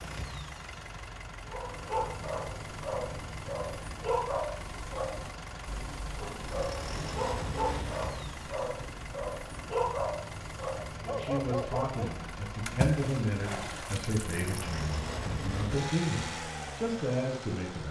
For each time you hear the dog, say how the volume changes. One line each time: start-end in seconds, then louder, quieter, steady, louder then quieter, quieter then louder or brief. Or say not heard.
1.5-12.2 steady.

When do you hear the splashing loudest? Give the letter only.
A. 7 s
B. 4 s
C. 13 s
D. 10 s
C.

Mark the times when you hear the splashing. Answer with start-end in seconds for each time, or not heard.
12.7-14.4.